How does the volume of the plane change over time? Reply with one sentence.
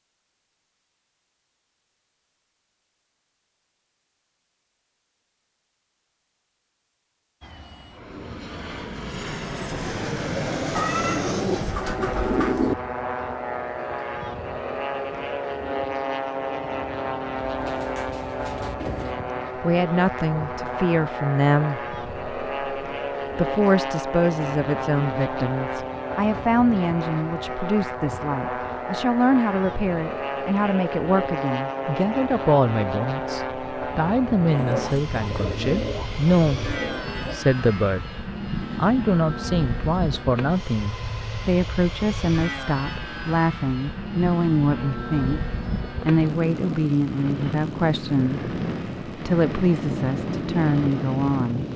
The volume of the plane stays about the same.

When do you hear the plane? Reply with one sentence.
The plane can be heard from 7.4 to 51.7 s.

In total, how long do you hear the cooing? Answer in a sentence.
The cooing can be heard for 7 seconds in total.